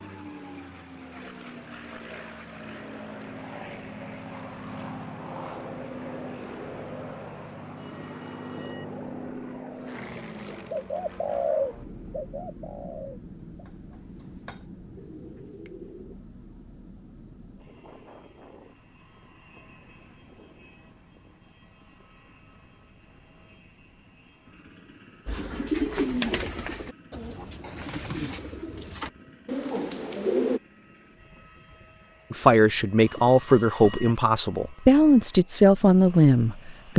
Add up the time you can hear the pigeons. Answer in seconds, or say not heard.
12 s.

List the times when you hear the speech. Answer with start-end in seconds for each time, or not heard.
32.3-36.9.